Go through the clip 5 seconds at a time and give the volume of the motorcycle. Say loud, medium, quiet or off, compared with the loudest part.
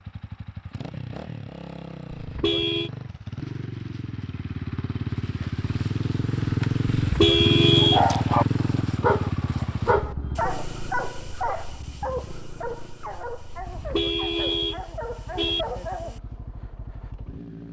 medium, loud, quiet, quiet.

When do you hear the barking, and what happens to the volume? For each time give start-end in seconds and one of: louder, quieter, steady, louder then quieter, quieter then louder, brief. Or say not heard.
7.3-16.2 quieter.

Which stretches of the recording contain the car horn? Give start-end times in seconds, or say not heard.
2.1-2.9, 7.0-8.1, 13.6-15.7.